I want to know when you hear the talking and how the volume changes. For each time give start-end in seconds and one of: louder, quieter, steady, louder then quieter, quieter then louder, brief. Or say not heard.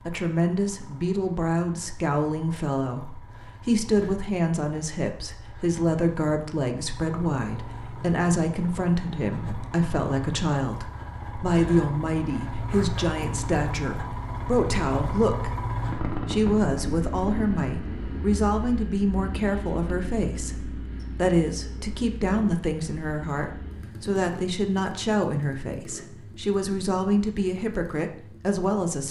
0.1-15.6 steady
16.2-29.0 steady.